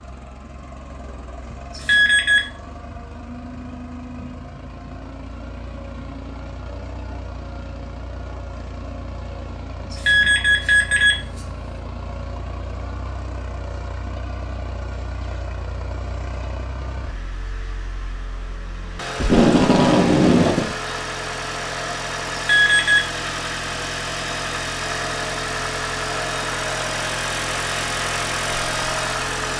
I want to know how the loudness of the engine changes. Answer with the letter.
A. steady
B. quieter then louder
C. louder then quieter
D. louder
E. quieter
D.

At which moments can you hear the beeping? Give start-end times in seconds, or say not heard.
1.7-2.4, 9.9-11.4, 22.4-23.0.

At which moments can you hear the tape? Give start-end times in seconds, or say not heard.
19.1-20.8.